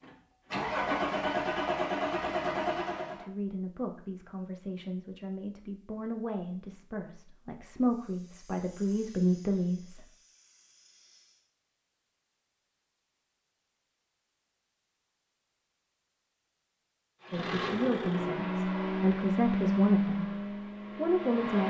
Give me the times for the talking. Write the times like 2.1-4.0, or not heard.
3.1-10.1, 17.3-21.6.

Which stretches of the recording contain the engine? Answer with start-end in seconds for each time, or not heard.
0.0-3.2, 17.2-21.6.